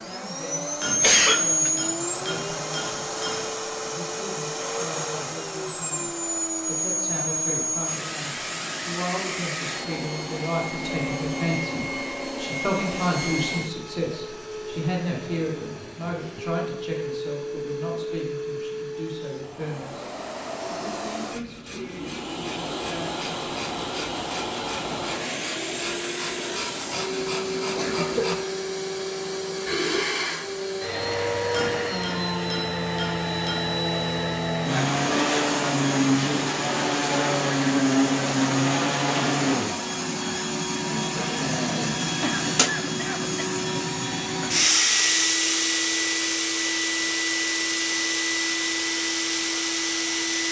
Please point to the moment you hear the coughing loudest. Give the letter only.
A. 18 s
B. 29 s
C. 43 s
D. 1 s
D.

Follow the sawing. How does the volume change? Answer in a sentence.
The volume of the sawing goes up.